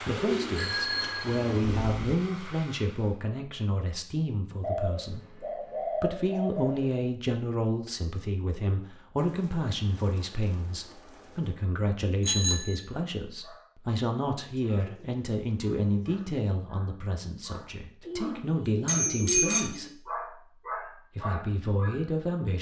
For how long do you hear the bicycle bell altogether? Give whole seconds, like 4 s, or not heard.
3 s.